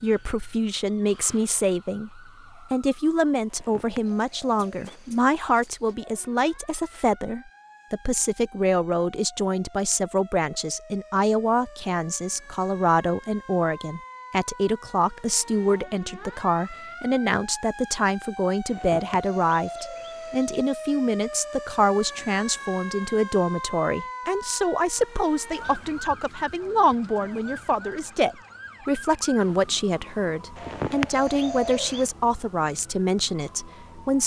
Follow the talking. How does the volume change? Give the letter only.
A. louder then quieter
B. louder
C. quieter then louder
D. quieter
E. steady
E.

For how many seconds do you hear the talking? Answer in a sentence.
The talking can be heard for 34 seconds in total.